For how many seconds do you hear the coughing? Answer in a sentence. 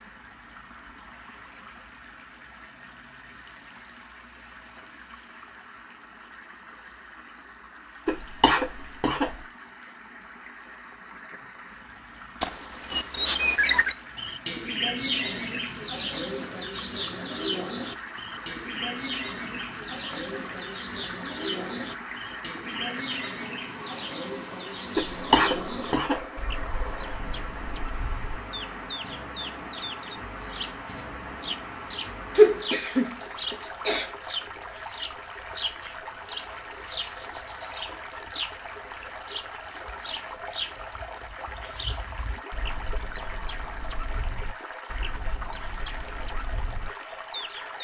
You can hear the coughing for 4 seconds altogether.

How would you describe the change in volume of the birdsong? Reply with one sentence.
The loudness of the birdsong goes down.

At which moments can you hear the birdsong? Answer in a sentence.
You can hear the birdsong from 12.4 to 47.7 s.